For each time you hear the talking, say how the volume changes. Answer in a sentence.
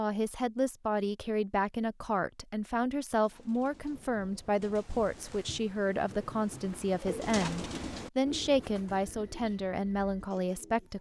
You can hear the talking from 0.0 to 10.9 s, at a steady volume.